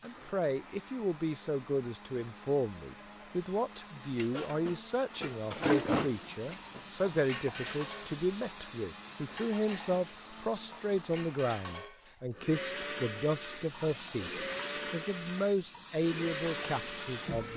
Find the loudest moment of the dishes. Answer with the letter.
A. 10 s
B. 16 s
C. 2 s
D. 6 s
D.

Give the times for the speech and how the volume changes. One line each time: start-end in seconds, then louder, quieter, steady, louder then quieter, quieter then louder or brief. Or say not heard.
0.0-17.5 steady.